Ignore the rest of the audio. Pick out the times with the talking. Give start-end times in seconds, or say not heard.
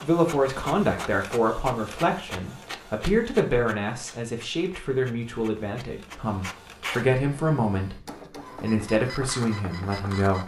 0.0-10.4.